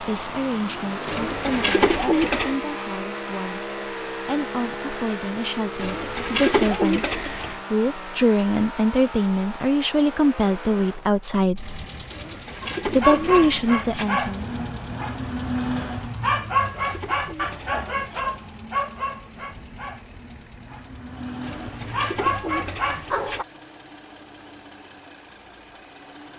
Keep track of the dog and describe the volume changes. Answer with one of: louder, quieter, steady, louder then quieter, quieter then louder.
quieter then louder.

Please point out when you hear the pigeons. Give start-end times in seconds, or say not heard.
1.1-2.6, 5.8-7.6, 12.1-14.1, 16.5-18.3, 21.4-23.4.